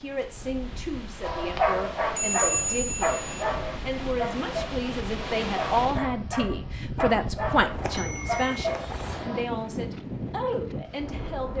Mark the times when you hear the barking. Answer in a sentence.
The barking can be heard from 1.2 to 9.4 s.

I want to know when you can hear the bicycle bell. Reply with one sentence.
You can hear the bicycle bell from 2.1 to 3.4 s and from 7.8 to 8.6 s.